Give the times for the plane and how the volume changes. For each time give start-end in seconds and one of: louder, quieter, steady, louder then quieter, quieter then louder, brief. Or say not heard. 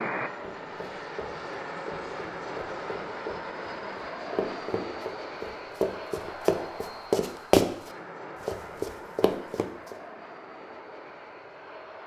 0.0-12.0 quieter.